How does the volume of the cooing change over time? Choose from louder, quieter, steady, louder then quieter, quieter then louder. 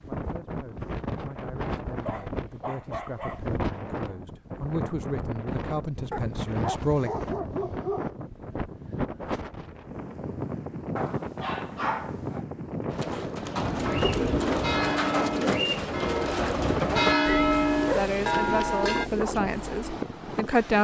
quieter.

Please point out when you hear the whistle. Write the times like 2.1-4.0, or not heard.
not heard.